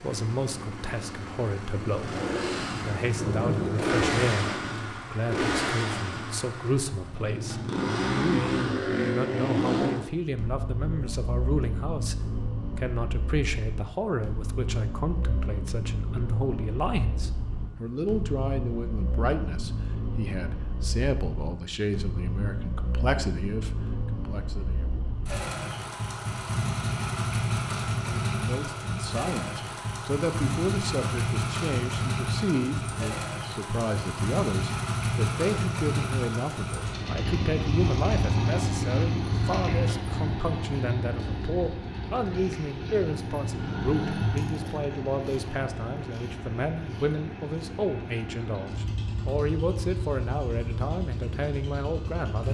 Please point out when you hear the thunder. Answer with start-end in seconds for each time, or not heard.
1.8-4.8.